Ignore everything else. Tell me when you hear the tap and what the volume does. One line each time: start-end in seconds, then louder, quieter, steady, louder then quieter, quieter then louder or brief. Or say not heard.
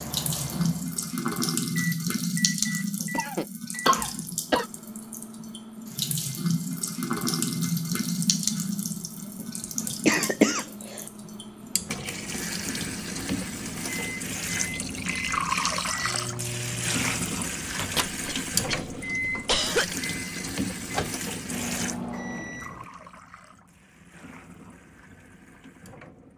0.0-26.3 quieter.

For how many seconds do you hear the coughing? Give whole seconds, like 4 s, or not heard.
4 s.